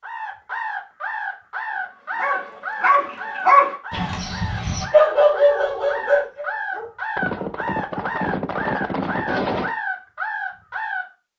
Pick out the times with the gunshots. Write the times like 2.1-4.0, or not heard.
7.2-9.8.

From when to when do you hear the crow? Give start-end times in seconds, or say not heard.
0.0-11.1.